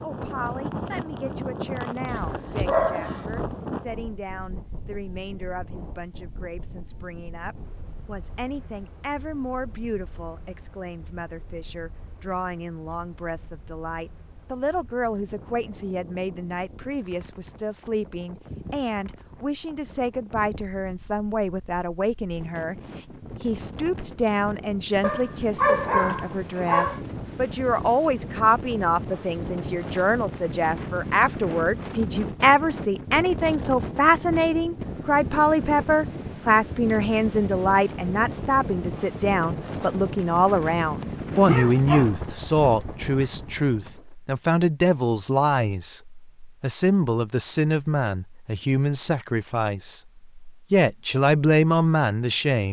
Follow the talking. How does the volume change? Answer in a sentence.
The loudness of the talking goes up.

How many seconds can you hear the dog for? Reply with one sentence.
You can hear the dog for 5 seconds altogether.